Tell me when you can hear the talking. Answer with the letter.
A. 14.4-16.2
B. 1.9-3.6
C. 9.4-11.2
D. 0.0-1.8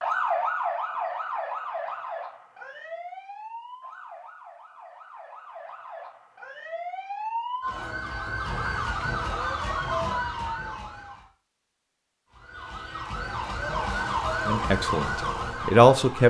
A.